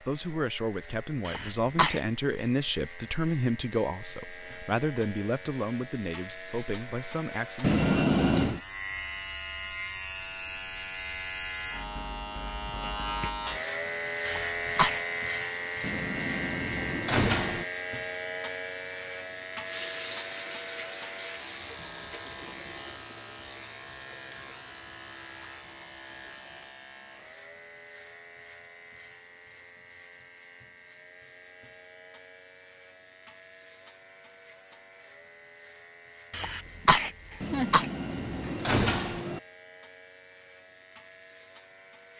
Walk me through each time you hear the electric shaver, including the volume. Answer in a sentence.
The electric shaver can be heard from 0.0 to 42.1 s, getting louder then quieter.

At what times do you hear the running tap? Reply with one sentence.
You can hear the running tap from 19.6 to 26.8 s.